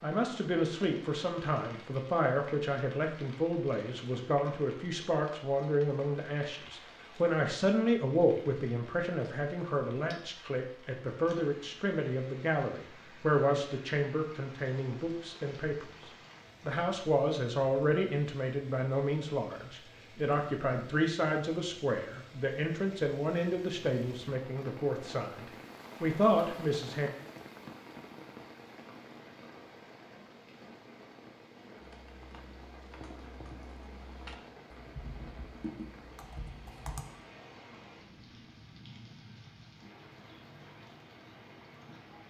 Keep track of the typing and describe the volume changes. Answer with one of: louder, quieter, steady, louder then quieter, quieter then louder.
louder.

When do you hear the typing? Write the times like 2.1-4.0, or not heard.
31.8-37.0.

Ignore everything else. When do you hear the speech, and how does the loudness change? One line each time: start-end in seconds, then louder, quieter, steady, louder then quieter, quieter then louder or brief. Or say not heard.
0.0-27.1 steady.